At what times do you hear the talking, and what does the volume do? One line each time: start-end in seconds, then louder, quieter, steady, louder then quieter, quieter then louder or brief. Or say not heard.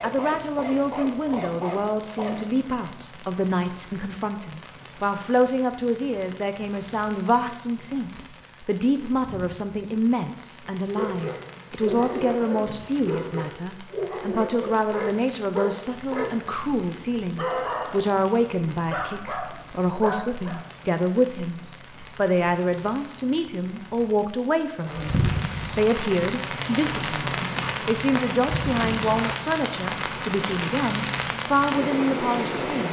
0.0-32.8 steady.